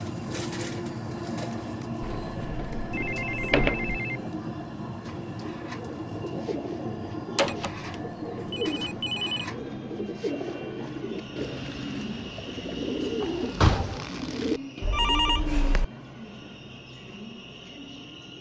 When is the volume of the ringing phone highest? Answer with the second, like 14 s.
15 s.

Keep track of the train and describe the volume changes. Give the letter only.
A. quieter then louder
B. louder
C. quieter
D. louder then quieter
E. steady
C.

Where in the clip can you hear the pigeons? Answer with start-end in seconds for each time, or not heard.
5.0-15.8.